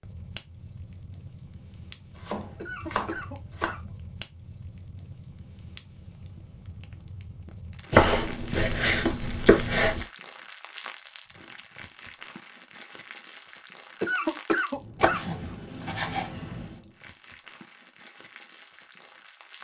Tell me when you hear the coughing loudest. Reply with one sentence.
The loudest moment of the coughing is at 14 seconds.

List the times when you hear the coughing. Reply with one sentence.
You can hear the coughing from 2.5 to 4.0 s and from 14.0 to 15.3 s.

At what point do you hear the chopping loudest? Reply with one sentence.
The loudest moment of the chopping is at 8 seconds.